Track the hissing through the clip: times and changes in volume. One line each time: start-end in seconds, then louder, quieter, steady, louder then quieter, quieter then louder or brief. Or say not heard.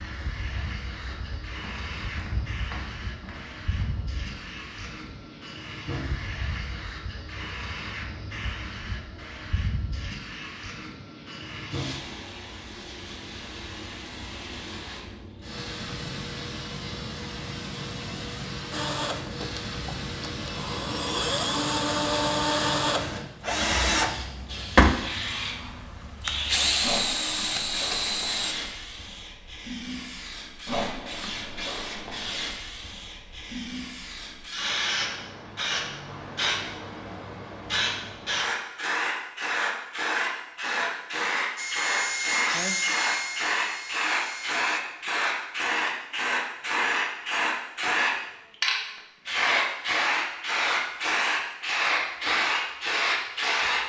0.0-53.8 louder.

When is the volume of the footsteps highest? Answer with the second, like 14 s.
2 s.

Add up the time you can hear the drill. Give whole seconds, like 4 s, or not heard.
13 s.